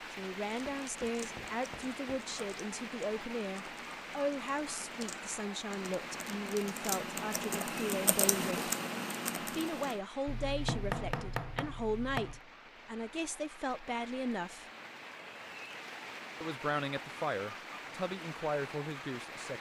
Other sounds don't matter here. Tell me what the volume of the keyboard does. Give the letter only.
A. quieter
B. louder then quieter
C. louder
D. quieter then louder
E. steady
C.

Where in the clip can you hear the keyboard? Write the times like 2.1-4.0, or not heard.
0.6-10.0.